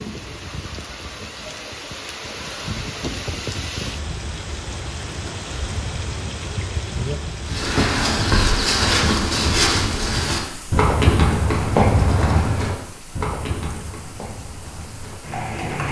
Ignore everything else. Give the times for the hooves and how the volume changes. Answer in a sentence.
The hooves can be heard from 7.5 to 15.8 s, getting quieter.